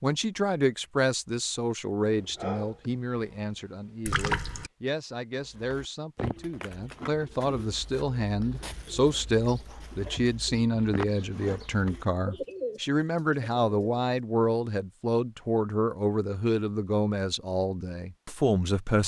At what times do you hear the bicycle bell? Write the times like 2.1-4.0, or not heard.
not heard.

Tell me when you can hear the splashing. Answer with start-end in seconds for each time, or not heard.
4.0-4.7.